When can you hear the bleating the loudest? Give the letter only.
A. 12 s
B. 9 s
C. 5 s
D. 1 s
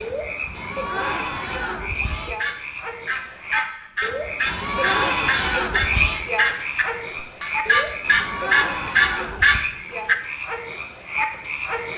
C.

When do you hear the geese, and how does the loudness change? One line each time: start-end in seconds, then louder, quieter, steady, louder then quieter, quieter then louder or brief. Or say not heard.
2.2-10.2 louder.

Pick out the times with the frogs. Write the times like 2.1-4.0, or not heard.
0.0-11.9.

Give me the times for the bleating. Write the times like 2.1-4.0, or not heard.
0.5-2.4, 4.5-6.2, 8.0-9.7.